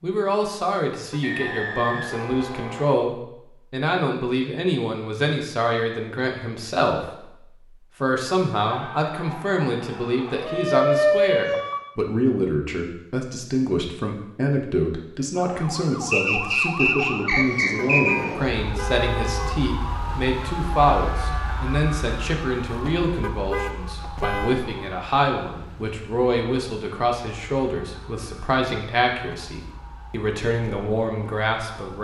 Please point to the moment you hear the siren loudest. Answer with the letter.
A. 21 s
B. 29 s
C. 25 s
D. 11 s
D.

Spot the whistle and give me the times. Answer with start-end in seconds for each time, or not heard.
1.2-2.7, 16.1-18.1.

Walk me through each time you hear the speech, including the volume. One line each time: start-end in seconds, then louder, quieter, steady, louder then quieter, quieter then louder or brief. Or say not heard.
0.0-7.4 steady
8.0-31.9 steady.